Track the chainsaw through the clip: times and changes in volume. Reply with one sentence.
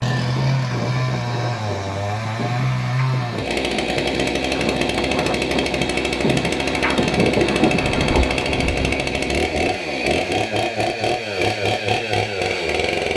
The chainsaw can be heard from 0.0 to 13.1 s, at a steady volume.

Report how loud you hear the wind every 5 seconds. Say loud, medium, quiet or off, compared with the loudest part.
medium, loud, off.